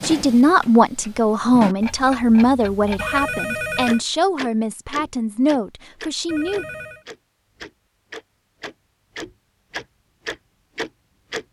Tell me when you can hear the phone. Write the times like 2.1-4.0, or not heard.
3.0-4.0, 6.2-7.0.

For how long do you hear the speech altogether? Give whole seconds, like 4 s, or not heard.
7 s.